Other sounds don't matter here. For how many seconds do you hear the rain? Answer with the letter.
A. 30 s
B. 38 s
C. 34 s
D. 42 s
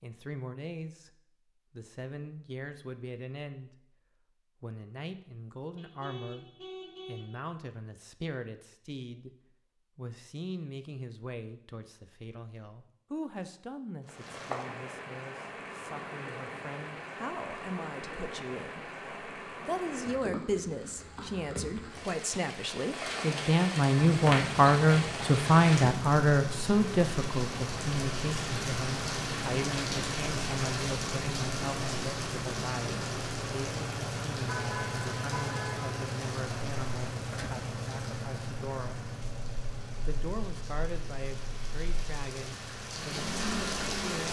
A.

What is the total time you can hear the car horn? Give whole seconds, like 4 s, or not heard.
3 s.